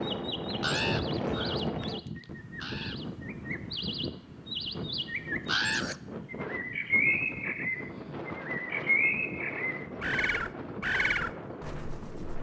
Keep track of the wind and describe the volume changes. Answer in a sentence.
The volume of the wind goes down.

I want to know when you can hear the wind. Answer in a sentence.
The wind can be heard from 0.0 to 12.3 s.